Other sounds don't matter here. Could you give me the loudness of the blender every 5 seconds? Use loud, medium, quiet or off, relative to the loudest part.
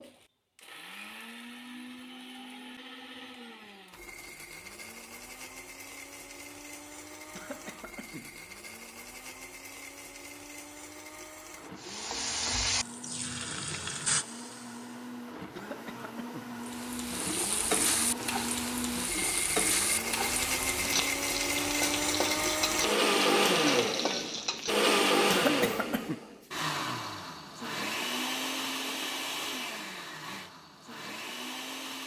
quiet, quiet, quiet, medium, loud, loud, quiet.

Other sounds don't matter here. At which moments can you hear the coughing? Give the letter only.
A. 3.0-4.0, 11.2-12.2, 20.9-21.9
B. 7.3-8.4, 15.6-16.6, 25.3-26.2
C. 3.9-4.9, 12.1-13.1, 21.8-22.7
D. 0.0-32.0
B.